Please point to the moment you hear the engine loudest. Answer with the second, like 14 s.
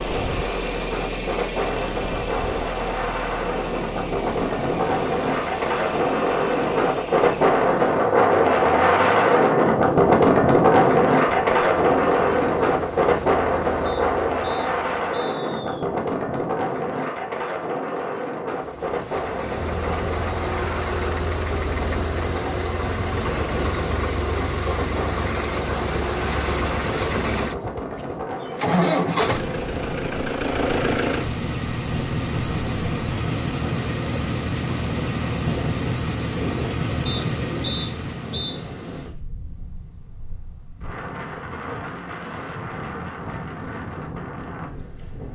29 s.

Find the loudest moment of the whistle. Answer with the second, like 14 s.
38 s.